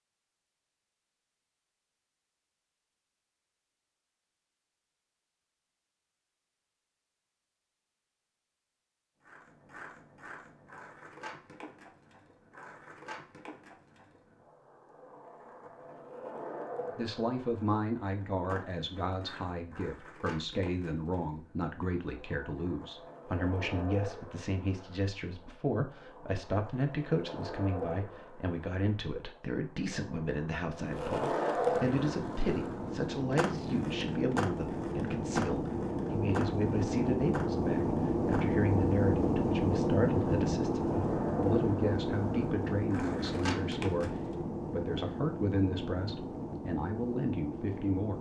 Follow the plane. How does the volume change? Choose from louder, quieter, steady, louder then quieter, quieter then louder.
louder then quieter.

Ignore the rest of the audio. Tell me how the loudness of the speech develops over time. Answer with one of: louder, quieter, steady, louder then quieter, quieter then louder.
steady.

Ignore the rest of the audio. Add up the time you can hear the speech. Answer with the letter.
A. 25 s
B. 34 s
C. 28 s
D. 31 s
D.